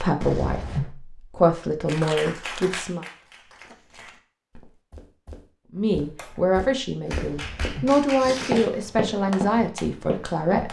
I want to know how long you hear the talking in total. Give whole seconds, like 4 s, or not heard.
8 s.